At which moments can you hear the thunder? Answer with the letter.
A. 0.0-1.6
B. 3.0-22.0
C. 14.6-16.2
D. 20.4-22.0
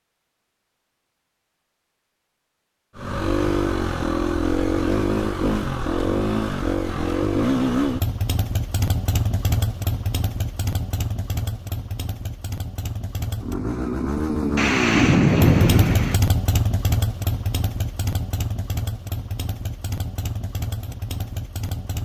C.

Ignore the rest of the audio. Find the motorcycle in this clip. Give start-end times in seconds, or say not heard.
3.0-22.0.